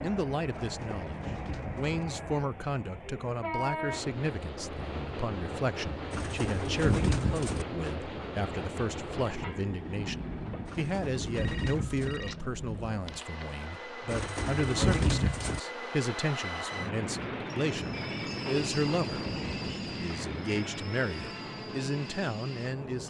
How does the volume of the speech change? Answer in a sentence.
The volume of the speech stays about the same.